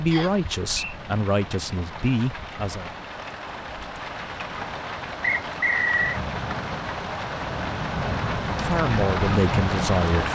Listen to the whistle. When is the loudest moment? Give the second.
6 s.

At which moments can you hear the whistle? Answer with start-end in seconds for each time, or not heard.
0.1-0.9, 5.2-6.2.